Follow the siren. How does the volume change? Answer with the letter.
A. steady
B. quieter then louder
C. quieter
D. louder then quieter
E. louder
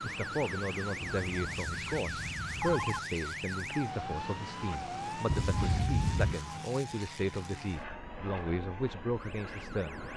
C.